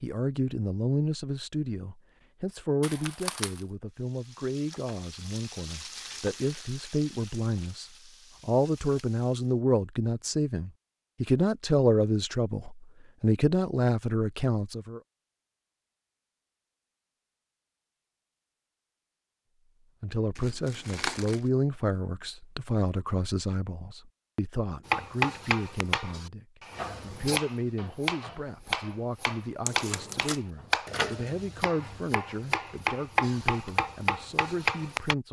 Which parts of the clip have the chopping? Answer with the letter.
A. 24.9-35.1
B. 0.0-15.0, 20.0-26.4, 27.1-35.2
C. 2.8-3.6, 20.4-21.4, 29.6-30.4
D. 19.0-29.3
A.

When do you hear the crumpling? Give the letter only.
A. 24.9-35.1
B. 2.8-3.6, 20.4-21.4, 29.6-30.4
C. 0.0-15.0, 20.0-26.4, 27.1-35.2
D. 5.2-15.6
B.